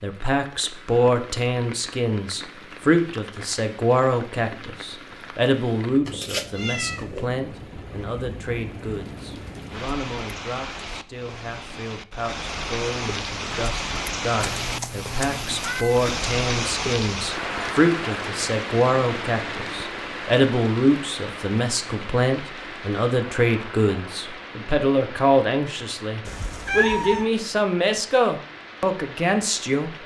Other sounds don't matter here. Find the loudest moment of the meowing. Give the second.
27 s.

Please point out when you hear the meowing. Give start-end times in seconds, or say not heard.
6.0-7.3, 14.4-16.1, 26.2-27.3.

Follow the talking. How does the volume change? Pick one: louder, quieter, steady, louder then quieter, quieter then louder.
quieter then louder.